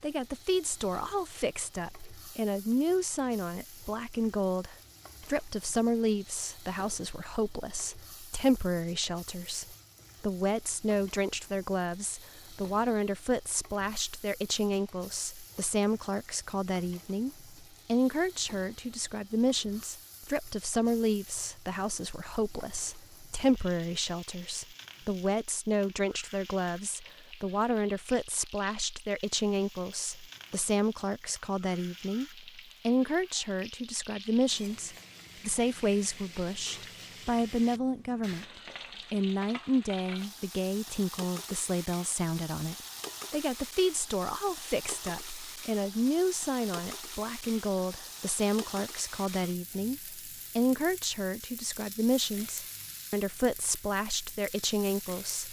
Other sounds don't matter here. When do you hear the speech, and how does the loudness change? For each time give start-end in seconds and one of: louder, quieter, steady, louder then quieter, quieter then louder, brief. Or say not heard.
0.0-38.5 steady
39.1-55.4 steady.